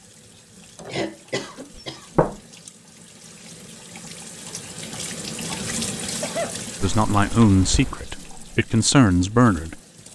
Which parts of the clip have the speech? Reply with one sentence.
You can hear the speech from 6.8 to 9.8 s.